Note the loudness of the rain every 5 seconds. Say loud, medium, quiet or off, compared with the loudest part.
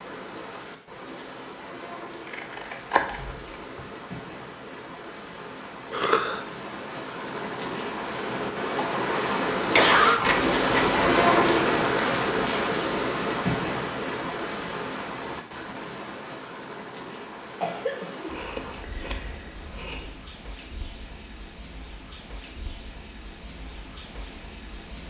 quiet, medium, loud, quiet, quiet.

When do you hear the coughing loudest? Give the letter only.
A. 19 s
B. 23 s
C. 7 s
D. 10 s
D.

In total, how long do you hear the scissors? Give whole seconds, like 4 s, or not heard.
4 s.